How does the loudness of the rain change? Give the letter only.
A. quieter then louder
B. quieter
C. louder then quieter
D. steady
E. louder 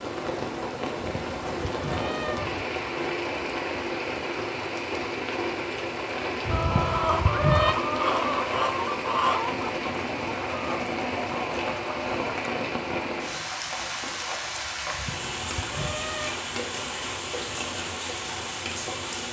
D.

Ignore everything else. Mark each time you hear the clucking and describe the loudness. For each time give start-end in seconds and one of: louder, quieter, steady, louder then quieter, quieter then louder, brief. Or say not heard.
6.5-12.5 quieter.